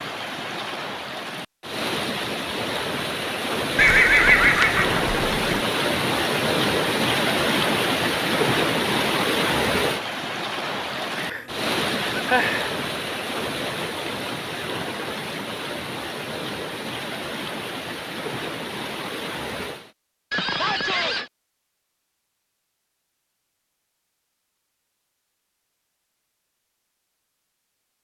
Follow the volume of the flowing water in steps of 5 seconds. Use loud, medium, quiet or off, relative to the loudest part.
medium, loud, medium, medium, off, off.